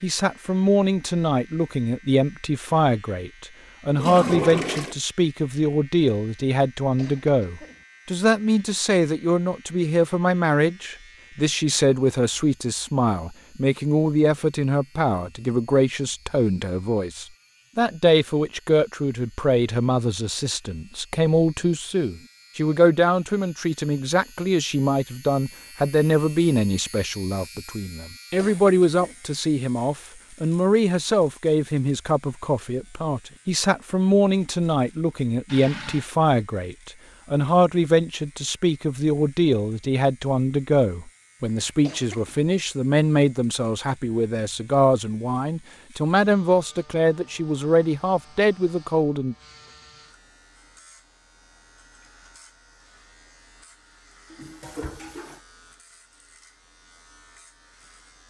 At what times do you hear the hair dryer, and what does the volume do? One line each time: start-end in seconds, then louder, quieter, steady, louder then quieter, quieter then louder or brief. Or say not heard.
not heard.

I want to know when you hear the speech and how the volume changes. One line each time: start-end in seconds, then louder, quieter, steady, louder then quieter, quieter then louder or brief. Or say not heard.
0.0-49.4 steady.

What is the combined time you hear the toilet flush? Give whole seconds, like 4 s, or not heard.
3 s.